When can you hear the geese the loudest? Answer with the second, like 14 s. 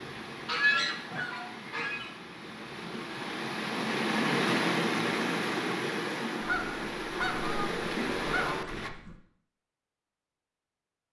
1 s.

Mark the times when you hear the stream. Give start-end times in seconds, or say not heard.
0.0-8.9.